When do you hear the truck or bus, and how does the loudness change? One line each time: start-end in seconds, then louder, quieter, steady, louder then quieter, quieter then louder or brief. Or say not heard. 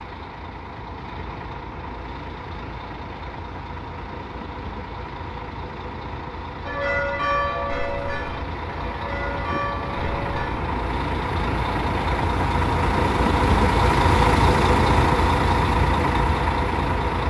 0.0-17.2 louder.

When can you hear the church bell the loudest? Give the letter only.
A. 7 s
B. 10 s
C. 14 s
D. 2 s
A.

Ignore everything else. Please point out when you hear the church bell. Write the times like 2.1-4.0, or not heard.
6.7-10.6.